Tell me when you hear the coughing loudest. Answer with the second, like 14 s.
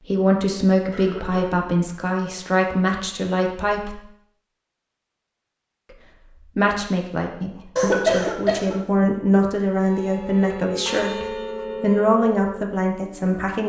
8 s.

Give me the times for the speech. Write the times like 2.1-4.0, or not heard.
0.0-4.0, 5.9-13.6.